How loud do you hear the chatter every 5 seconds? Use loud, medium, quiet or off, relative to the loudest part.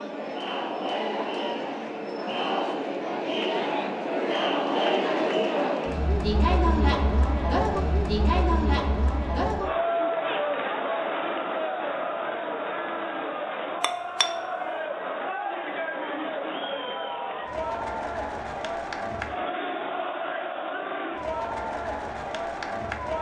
loud, loud, loud, medium, medium.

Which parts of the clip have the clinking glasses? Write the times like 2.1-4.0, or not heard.
13.8-14.8.